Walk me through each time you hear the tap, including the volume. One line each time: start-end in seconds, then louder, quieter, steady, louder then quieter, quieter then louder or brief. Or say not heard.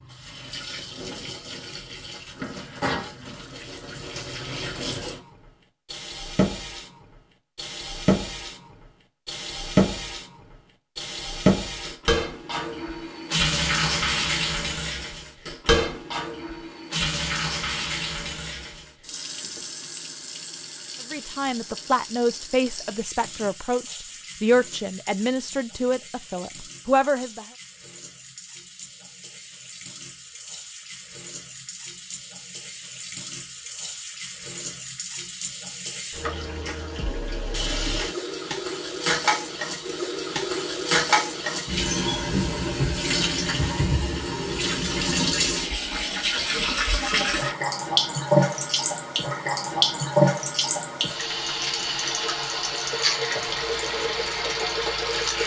0.0-55.4 quieter then louder.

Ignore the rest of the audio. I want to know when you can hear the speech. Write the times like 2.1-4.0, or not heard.
21.1-27.4.